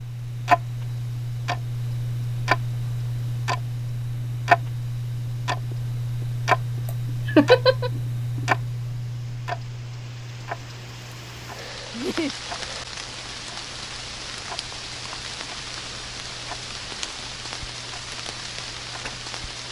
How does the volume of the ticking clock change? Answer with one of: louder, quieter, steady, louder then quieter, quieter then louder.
quieter.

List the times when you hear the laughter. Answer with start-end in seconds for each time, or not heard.
7.2-7.9, 11.9-12.3.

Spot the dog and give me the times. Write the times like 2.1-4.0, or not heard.
not heard.